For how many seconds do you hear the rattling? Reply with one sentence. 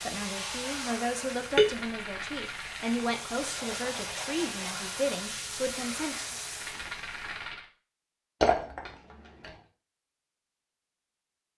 You can hear the rattling for 3 seconds altogether.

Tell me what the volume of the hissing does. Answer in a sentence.
The volume of the hissing goes down, then up.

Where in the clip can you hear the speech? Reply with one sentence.
The speech can be heard from 0.1 to 6.3 s.